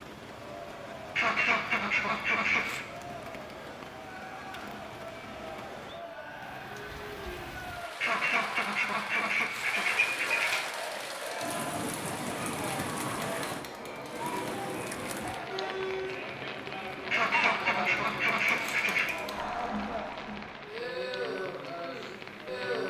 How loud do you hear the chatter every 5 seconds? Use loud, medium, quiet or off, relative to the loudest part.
medium, medium, loud, loud, loud.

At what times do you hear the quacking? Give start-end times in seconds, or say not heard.
1.1-2.9, 8.0-10.7, 17.1-19.1.